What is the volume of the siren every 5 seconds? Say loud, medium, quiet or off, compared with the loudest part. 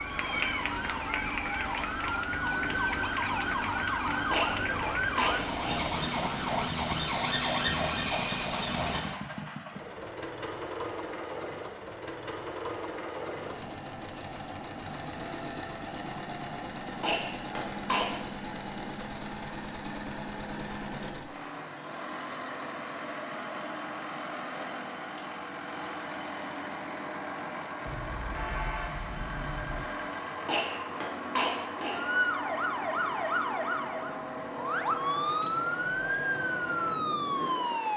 loud, loud, off, off, off, off, loud, loud.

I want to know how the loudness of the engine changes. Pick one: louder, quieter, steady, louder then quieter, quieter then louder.
steady.